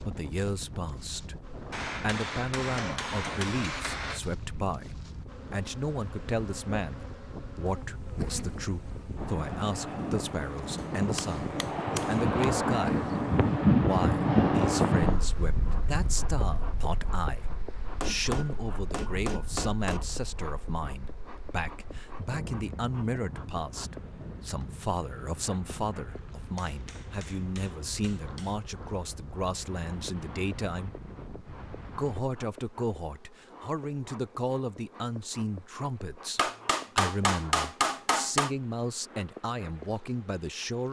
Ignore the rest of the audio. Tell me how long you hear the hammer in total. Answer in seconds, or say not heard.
10 s.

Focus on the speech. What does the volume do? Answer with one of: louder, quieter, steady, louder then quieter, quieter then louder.
steady.